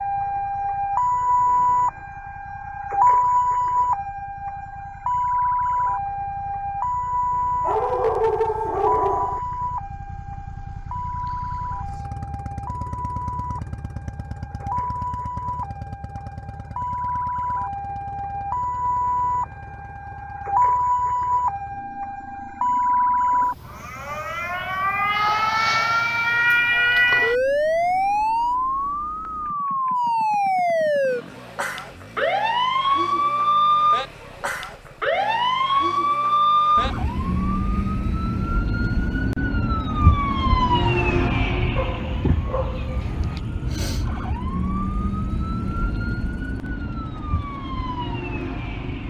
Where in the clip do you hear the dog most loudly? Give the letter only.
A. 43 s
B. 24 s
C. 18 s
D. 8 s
D.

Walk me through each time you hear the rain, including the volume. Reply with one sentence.
The rain can't be heard in this clip.